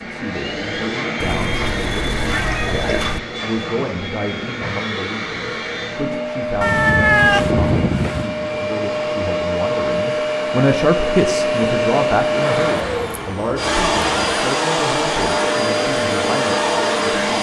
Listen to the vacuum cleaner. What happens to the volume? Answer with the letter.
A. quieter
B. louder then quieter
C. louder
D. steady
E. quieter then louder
C.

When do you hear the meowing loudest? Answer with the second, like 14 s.
7 s.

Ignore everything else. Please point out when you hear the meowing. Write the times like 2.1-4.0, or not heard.
1.2-3.2, 6.6-8.3, 12.8-14.2.